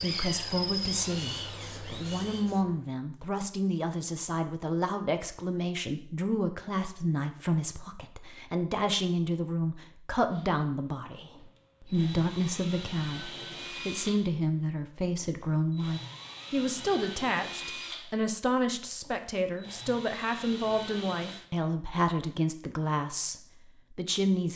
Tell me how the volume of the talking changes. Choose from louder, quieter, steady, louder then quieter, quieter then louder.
steady.